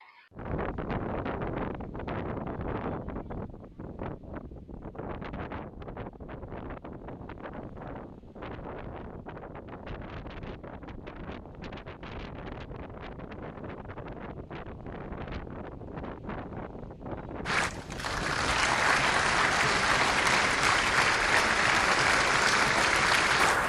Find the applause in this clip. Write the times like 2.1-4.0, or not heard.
17.4-23.6.